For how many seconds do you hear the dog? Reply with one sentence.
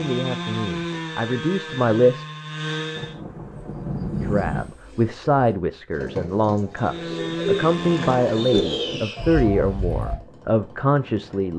You can't hear the dog here.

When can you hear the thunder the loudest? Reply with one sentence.
The volume of the thunder peaks at 4 seconds.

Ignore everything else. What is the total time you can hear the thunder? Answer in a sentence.
You can hear the thunder for 2 seconds altogether.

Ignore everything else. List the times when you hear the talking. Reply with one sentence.
You can hear the talking from 0.0 to 2.2 s and from 4.2 to 11.5 s.